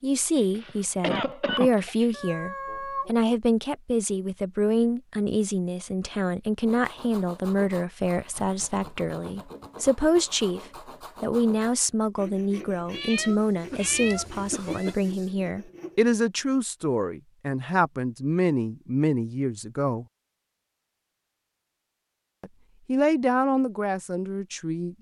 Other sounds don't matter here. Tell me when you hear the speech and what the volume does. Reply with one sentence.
You can hear the speech from 0.0 to 20.1 s, at a steady volume; and briefly from 22.4 to 24.9 s.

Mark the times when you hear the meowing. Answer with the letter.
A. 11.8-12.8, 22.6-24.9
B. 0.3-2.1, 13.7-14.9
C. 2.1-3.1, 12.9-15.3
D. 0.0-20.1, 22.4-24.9
C.